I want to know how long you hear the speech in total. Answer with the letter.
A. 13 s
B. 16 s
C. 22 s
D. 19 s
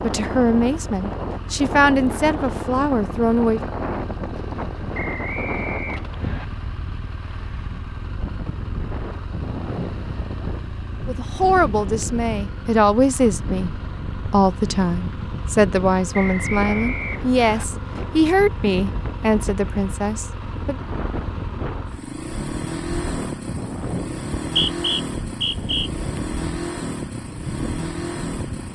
A.